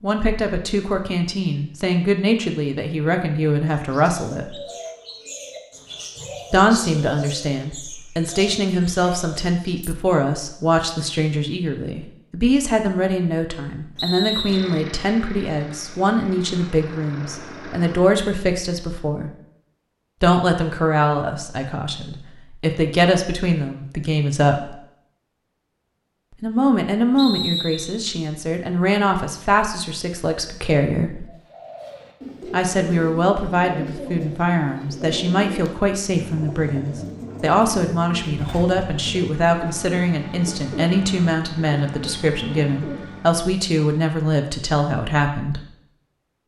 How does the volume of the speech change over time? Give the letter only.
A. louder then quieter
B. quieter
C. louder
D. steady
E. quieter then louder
D.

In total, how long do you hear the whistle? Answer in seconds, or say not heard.
2 s.